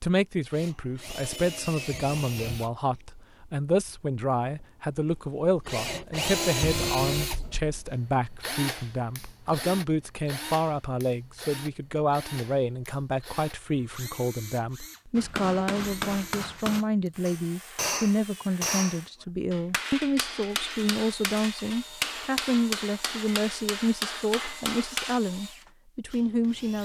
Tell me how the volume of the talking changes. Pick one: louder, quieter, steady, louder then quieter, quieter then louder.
steady.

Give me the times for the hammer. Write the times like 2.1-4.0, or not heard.
15.2-25.2.